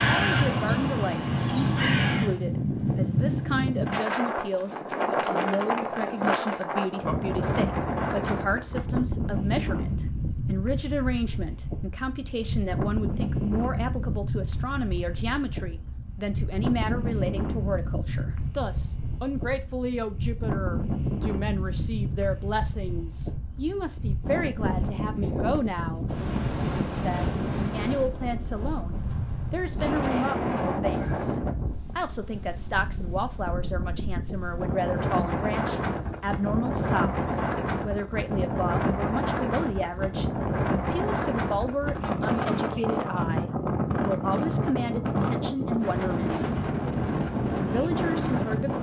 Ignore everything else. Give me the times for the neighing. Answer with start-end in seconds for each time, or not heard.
not heard.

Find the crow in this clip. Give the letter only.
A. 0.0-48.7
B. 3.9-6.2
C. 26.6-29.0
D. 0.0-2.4
D.